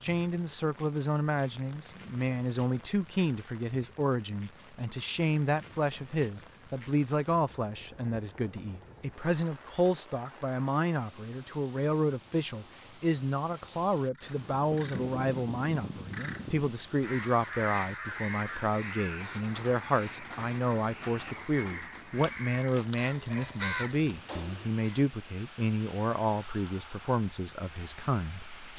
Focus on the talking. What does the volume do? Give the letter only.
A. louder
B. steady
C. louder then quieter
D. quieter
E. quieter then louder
B.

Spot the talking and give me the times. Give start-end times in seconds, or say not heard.
0.0-28.7.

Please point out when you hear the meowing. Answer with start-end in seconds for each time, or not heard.
not heard.